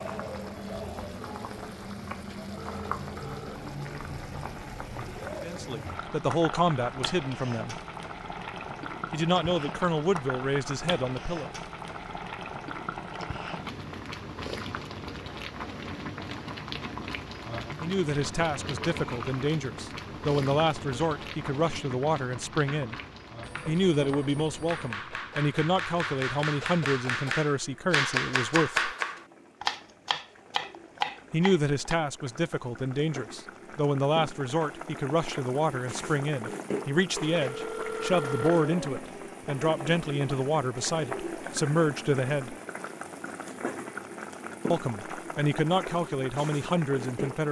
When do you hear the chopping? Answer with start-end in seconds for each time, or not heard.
22.5-31.9.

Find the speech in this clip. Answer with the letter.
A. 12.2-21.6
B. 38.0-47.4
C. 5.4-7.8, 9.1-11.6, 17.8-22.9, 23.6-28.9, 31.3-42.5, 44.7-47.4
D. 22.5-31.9
C.